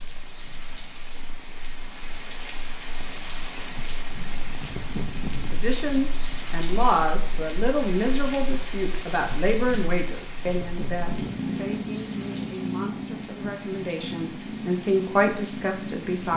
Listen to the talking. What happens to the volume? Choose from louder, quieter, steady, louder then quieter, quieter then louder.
quieter then louder.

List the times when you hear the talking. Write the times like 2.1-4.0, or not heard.
5.5-16.3.